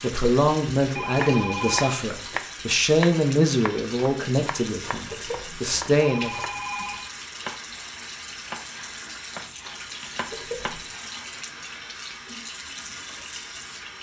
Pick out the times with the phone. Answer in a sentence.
The phone can be heard from 0.0 to 2.0 s, from 5.0 to 7.1 s and from 10.2 to 10.9 s.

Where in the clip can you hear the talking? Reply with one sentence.
The talking can be heard from 0.0 to 6.4 s.